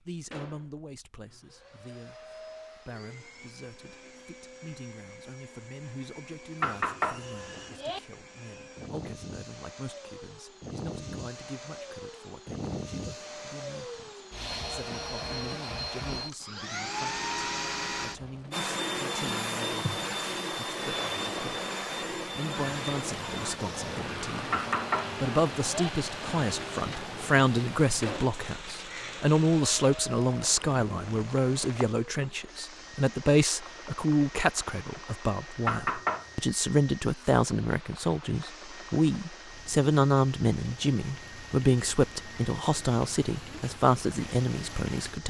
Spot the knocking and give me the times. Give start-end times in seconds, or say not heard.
6.6-8.0, 24.5-25.9, 35.6-36.3.